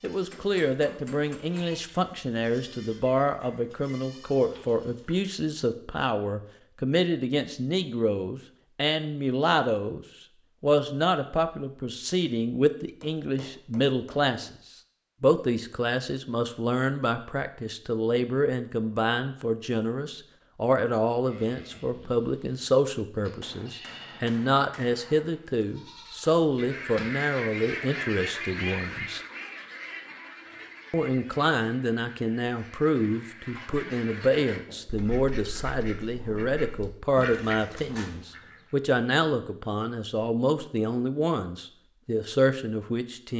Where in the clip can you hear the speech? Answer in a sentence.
You can hear the speech from 0.0 to 14.5 s, from 15.2 to 29.2 s and from 30.9 to 43.3 s.